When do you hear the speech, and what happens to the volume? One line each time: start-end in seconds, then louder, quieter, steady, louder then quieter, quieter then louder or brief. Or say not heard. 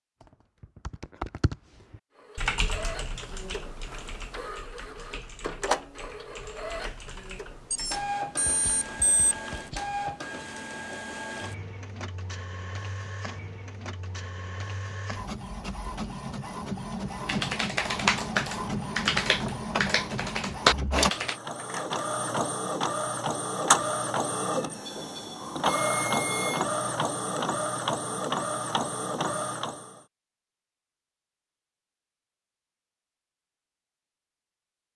not heard.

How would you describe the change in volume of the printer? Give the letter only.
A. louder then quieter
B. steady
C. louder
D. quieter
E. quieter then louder
C.